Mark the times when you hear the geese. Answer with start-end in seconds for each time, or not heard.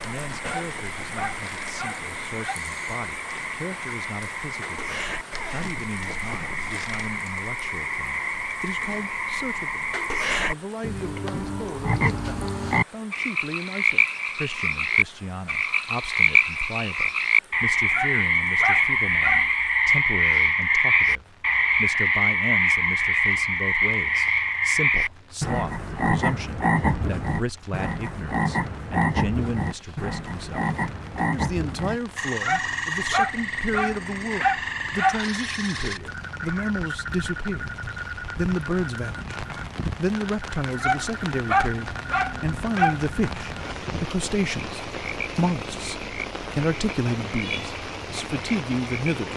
not heard.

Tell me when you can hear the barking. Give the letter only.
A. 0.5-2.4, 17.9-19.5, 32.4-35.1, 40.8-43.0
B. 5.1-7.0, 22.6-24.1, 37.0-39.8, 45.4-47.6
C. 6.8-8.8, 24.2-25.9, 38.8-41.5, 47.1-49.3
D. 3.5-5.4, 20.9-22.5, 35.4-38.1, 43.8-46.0
A.